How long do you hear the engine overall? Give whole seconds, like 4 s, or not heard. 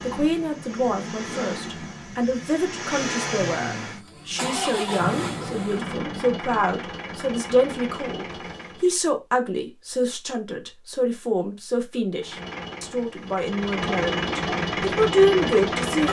13 s.